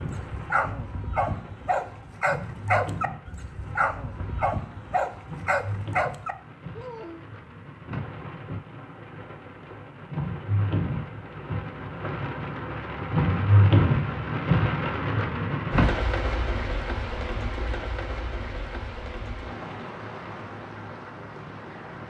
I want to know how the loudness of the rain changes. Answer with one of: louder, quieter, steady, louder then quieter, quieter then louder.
louder then quieter.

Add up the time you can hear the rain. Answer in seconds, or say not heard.
22 s.